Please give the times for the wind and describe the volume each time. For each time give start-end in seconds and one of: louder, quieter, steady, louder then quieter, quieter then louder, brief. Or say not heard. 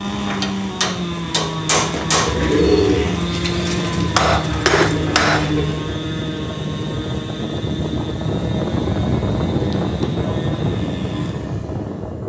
0.0-12.2 louder.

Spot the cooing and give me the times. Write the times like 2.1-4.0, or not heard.
2.1-5.8.